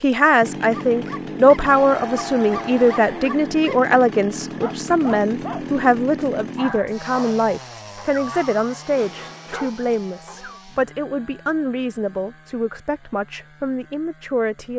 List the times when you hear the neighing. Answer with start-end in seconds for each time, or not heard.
not heard.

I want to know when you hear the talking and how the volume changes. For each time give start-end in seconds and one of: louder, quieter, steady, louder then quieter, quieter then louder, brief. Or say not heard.
0.0-14.7 quieter.